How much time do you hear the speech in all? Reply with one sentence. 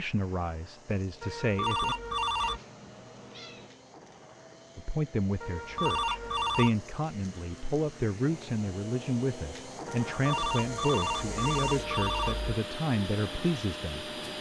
You can hear the speech for 11 seconds altogether.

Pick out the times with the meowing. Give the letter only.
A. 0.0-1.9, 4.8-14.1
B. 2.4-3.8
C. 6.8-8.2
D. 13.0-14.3
B.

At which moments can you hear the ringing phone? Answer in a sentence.
You can hear the ringing phone from 1.2 to 2.6 s, from 5.4 to 6.7 s and from 9.8 to 12.6 s.